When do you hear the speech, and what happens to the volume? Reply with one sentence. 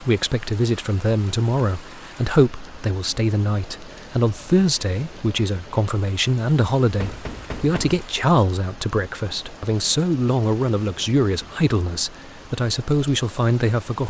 You can hear the speech from 0.0 to 14.0 s, at a steady volume.